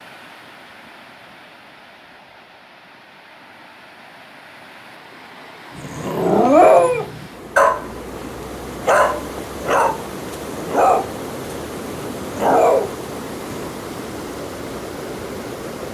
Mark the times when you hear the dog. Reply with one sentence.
You can hear the dog from 5.8 to 13.7 s.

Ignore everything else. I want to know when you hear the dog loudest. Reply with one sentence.
The volume of the dog peaks at 7 seconds.